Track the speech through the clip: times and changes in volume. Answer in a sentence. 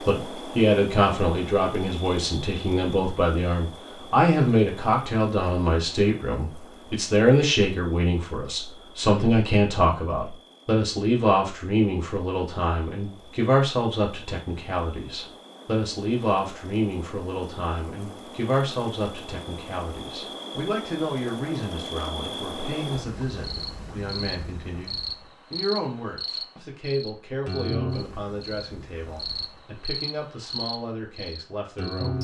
You can hear the speech from 0.1 to 32.1 s, getting quieter.